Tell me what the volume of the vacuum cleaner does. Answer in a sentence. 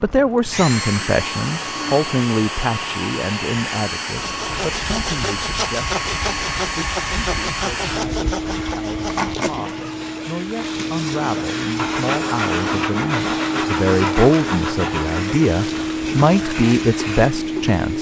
The loudness of the vacuum cleaner stays about the same.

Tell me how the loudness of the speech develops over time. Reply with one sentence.
The volume of the speech goes down, then up.